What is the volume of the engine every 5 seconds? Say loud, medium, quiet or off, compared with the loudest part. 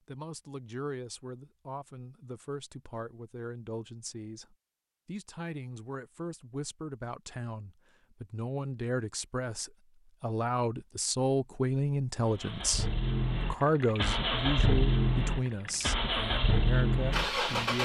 off, off, loud, loud.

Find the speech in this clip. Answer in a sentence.
The speech can be heard from 0.1 to 17.8 s.